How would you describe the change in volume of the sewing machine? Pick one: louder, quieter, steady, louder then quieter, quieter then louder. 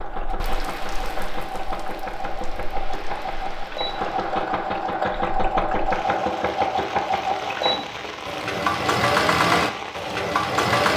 louder.